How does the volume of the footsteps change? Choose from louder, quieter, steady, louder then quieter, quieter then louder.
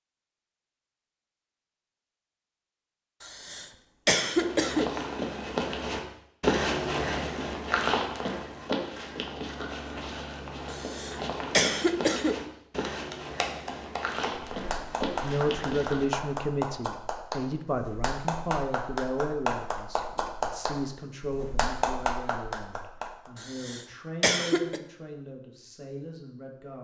quieter.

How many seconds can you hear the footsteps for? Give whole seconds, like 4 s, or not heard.
12 s.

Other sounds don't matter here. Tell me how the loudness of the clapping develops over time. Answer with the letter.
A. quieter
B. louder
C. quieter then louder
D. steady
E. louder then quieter
D.